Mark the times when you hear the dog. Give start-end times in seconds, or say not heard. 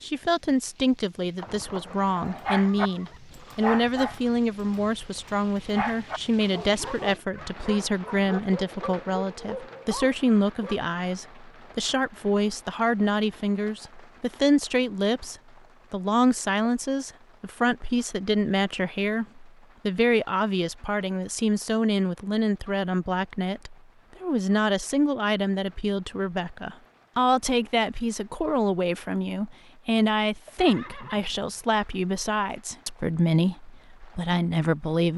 2.4-10.8.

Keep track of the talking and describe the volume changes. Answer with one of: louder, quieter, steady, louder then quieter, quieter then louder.
steady.